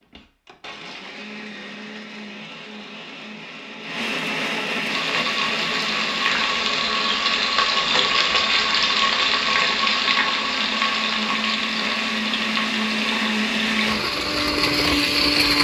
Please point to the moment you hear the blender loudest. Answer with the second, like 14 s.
15 s.